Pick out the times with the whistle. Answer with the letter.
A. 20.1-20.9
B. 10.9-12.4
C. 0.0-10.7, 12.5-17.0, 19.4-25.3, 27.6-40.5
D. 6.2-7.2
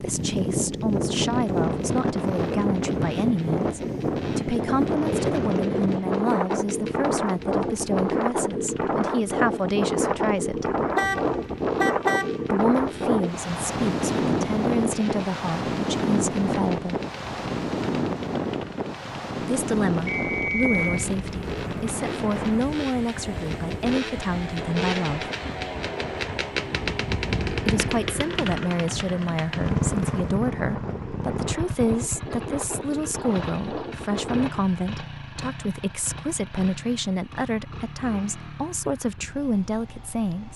A.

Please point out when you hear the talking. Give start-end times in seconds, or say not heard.
0.0-10.7, 12.5-17.0, 19.4-25.3, 27.6-40.5.